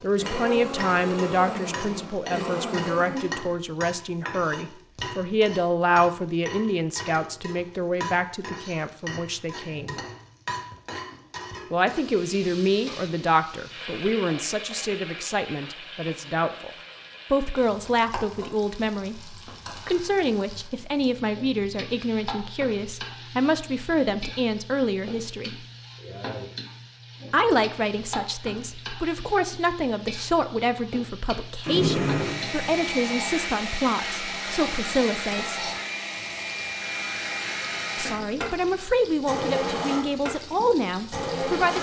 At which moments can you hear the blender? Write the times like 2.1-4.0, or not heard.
0.0-3.5, 31.6-41.7.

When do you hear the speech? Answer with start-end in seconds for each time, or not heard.
0.0-9.9, 11.7-16.7, 17.3-25.6, 27.3-35.6, 38.0-41.7.